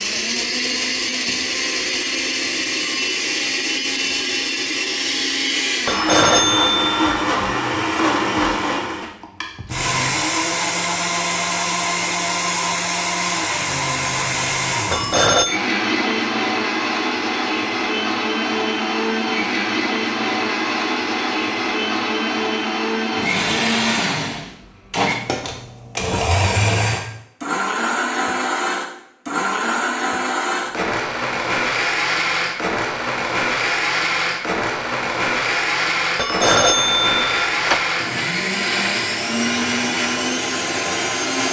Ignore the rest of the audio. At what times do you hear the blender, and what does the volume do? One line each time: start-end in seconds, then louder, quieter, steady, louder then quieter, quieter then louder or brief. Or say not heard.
0.0-41.4 steady.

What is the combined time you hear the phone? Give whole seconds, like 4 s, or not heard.
4 s.